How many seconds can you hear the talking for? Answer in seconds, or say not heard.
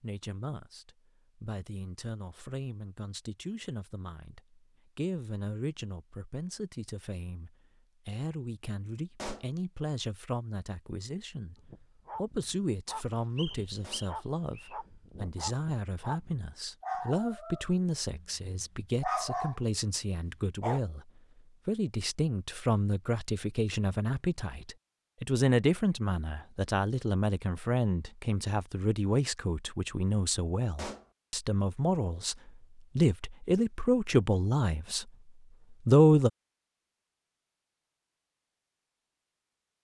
34 s.